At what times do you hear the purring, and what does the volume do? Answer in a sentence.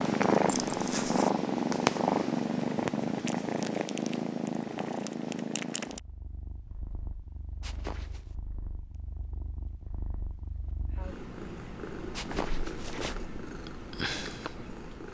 You can hear the purring from 0.0 to 15.1 s, getting quieter then louder.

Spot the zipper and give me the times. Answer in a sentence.
You can hear the zipper from 0.5 to 1.3 s, from 7.6 to 8.3 s and from 12.1 to 13.2 s.